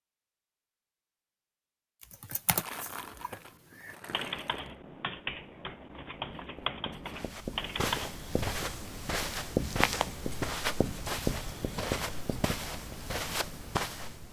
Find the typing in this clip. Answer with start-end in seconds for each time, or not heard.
2.0-8.2.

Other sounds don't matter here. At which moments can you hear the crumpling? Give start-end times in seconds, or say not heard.
2.5-4.8.